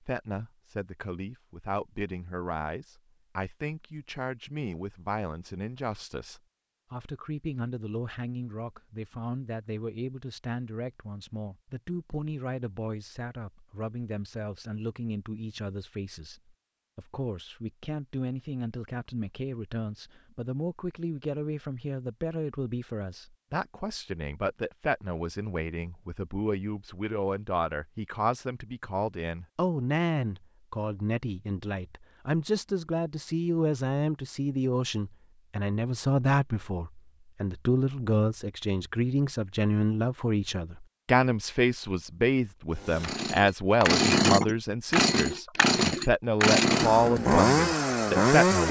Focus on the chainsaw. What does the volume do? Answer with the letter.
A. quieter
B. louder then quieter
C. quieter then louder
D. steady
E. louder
D.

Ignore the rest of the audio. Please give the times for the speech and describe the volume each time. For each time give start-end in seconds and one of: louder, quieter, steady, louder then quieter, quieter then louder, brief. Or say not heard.
0.0-48.6 louder.